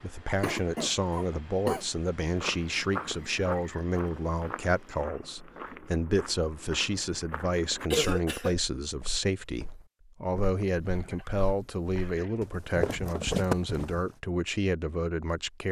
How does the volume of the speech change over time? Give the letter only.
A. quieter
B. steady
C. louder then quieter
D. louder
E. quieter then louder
B.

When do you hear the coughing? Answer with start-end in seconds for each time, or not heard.
0.4-1.9, 7.9-8.6, 10.9-12.5.